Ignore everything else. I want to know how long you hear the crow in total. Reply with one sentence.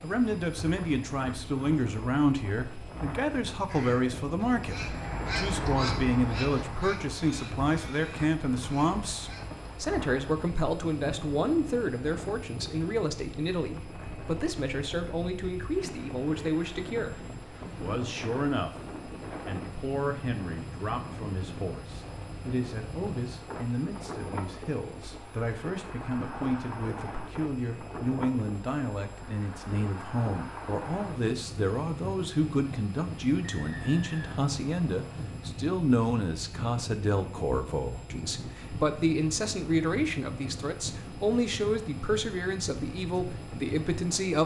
You can hear the crow for 6 seconds altogether.